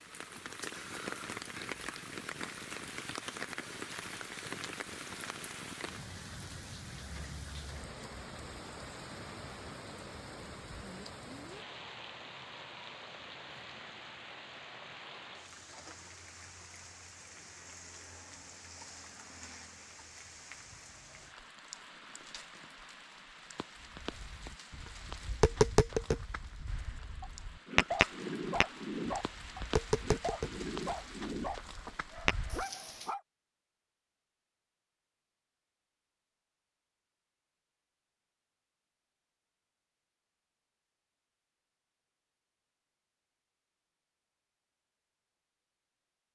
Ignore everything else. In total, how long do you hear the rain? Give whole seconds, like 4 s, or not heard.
33 s.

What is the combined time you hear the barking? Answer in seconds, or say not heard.
6 s.